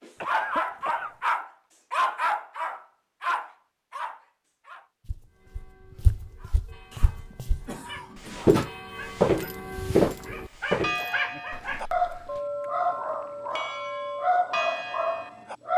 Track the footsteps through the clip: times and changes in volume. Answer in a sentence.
You can hear the footsteps briefly from 5.0 to 7.7 s; and from 8.3 to 12.4 s, getting quieter.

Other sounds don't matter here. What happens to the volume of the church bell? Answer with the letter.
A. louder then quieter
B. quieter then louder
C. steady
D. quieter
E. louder
E.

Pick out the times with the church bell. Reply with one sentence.
You can hear the church bell from 5.3 to 15.6 s.